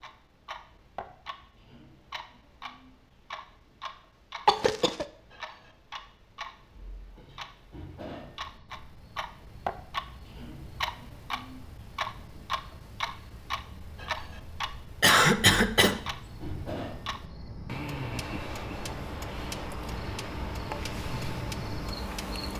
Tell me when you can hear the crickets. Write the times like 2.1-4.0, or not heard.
8.3-22.5.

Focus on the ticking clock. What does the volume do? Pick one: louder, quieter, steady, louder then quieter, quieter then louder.
louder.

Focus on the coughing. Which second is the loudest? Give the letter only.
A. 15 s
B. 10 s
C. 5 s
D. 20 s
A.